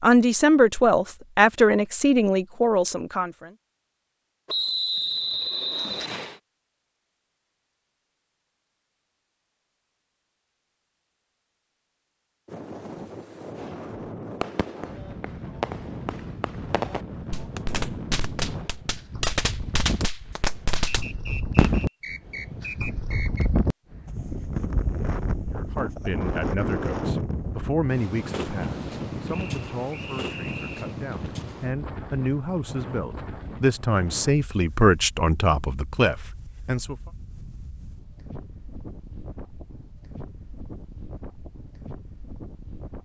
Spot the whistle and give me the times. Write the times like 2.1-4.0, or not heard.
4.5-6.4, 20.9-23.6, 29.3-30.9.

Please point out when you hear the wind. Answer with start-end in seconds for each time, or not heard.
12.4-43.0.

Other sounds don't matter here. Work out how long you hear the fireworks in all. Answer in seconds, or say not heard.
8 s.